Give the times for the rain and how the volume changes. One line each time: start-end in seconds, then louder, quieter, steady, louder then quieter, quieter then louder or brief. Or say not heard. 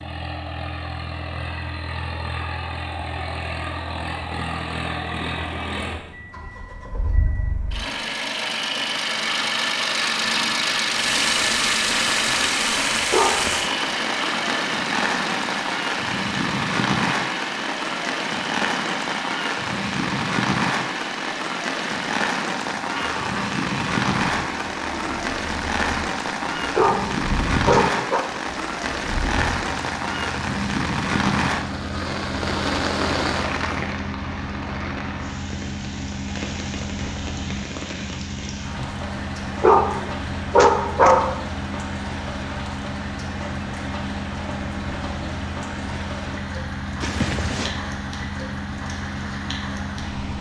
10.9-50.3 quieter.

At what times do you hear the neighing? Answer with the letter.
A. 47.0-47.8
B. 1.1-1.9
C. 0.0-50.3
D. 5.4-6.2
A.